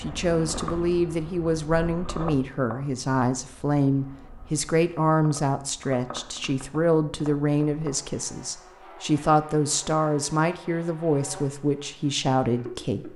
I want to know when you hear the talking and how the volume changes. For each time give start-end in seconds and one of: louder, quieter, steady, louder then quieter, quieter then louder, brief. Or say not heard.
0.0-13.1 steady.